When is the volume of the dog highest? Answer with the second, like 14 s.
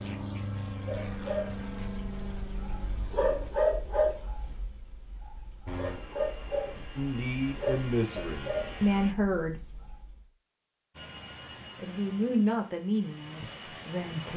4 s.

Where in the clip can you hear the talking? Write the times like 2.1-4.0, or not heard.
7.0-9.6, 11.8-14.3.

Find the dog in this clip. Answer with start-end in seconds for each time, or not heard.
0.7-10.2.